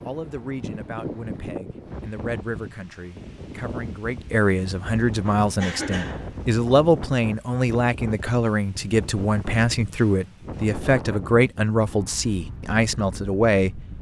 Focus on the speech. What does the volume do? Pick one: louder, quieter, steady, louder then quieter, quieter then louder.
louder.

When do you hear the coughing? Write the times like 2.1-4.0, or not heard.
5.0-6.5.